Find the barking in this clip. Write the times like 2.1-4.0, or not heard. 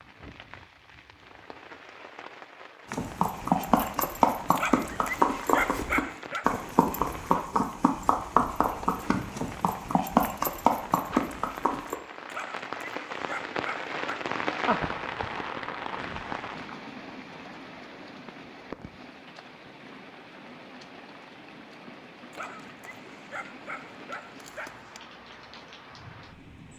4.5-6.5, 12.2-14.2, 22.3-25.0.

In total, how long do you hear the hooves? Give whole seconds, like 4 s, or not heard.
9 s.